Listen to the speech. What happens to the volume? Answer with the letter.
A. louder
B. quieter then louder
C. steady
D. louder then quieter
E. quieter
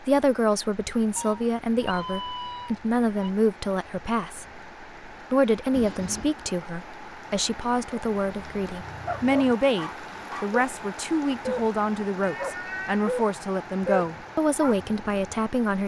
C.